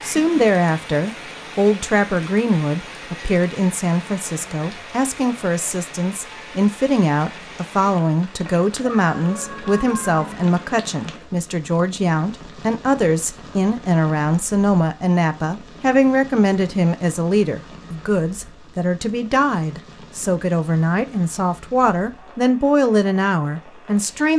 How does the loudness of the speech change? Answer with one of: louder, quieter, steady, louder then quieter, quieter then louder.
steady.